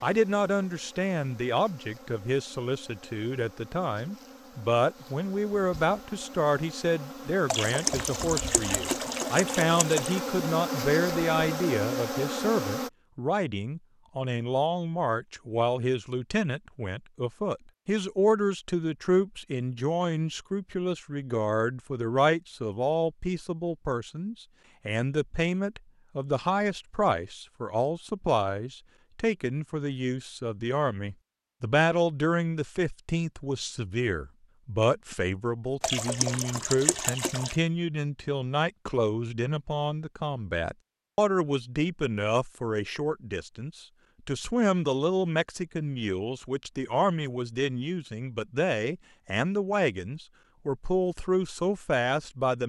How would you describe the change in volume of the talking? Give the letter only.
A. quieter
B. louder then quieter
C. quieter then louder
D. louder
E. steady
E.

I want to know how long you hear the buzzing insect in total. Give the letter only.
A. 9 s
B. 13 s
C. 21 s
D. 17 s
B.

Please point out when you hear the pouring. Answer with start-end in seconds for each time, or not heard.
7.5-10.2, 35.8-37.5.